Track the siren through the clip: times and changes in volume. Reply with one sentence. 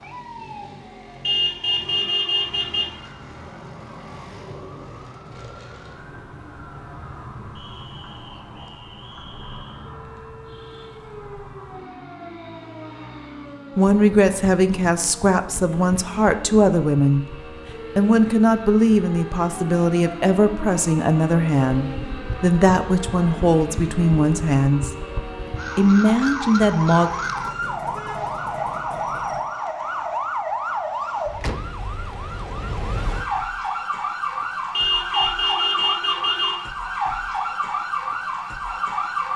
You can hear the siren from 0.0 to 39.3 s, getting louder.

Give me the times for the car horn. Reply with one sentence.
You can hear the car horn from 1.2 to 2.9 s and from 34.7 to 36.6 s.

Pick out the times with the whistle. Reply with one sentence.
The whistle can be heard from 7.5 to 9.8 s.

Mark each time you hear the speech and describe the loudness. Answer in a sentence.
You can hear the speech from 13.8 to 24.9 s, at a steady volume; and briefly from 25.8 to 27.1 s.